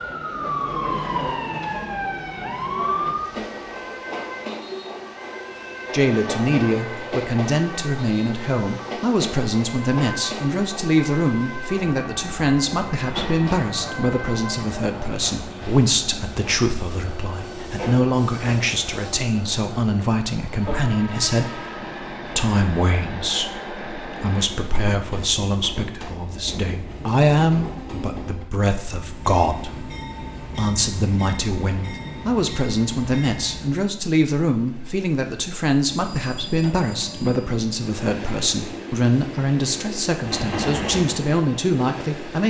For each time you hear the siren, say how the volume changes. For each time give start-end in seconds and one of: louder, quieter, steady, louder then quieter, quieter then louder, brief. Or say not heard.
0.0-14.8 quieter.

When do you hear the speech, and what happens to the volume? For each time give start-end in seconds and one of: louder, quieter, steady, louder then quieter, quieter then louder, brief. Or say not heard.
5.9-42.4 steady.